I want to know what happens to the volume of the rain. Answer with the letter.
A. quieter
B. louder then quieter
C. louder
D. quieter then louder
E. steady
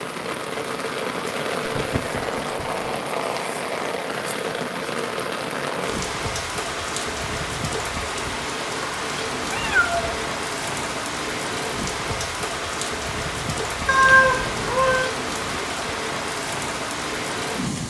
E.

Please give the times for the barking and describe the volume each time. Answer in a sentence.
You can't hear the barking here.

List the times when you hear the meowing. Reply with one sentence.
You can hear the meowing from 1.6 to 2.9 s, from 9.5 to 10.2 s and from 13.8 to 15.1 s.